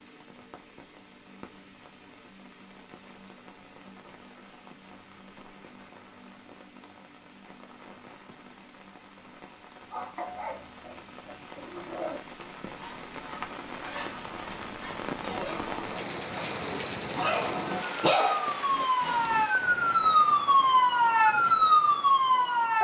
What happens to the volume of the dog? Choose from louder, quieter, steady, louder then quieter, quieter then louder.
louder.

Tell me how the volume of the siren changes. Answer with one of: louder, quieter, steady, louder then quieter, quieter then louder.
louder.